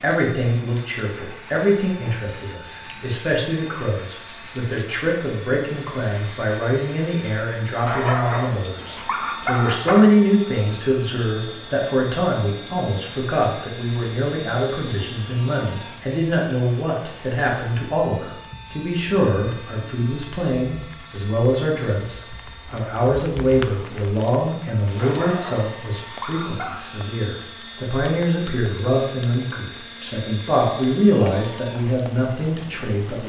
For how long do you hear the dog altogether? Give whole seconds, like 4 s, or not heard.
4 s.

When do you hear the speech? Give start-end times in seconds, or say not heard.
0.0-33.2.